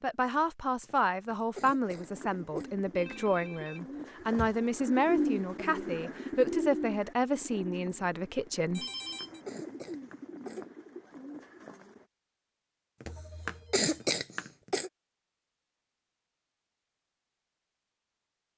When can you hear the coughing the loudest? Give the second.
14 s.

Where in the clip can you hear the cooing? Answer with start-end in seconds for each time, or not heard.
1.8-12.1.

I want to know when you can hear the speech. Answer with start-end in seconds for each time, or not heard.
0.0-8.8.